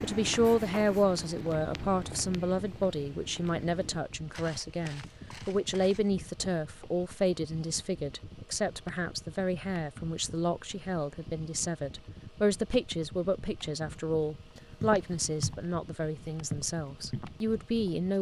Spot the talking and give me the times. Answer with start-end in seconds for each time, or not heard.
0.0-18.1.